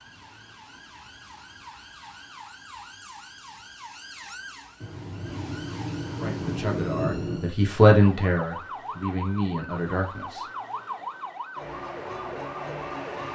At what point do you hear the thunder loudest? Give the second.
7 s.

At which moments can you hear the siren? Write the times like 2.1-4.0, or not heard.
0.0-13.3.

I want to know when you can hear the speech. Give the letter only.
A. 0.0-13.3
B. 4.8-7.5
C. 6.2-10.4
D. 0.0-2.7
C.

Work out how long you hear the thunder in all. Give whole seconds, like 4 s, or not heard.
3 s.